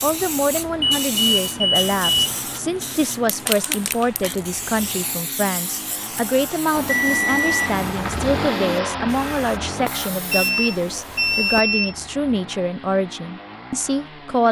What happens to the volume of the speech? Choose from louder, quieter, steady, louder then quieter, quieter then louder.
steady.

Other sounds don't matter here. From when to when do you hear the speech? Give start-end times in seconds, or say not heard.
0.0-14.4.